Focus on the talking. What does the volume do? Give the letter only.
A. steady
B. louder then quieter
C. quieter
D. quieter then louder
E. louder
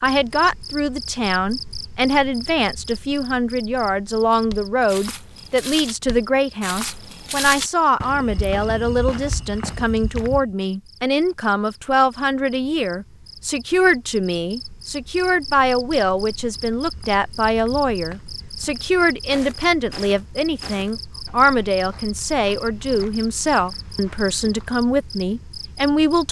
A.